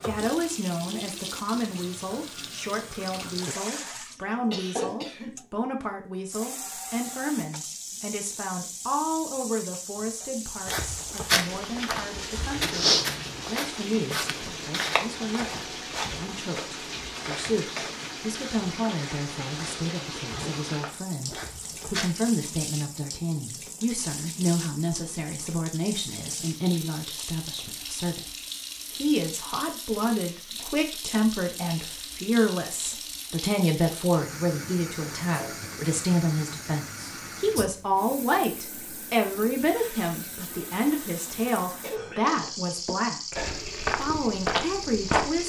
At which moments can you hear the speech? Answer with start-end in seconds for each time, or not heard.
0.0-28.2, 28.9-43.4, 44.0-45.4.